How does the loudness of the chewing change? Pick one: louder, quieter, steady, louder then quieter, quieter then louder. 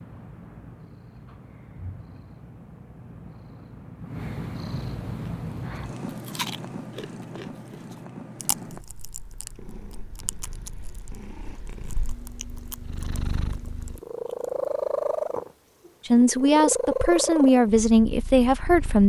quieter.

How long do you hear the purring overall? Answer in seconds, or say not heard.
19 s.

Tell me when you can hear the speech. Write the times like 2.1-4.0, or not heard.
16.1-19.0.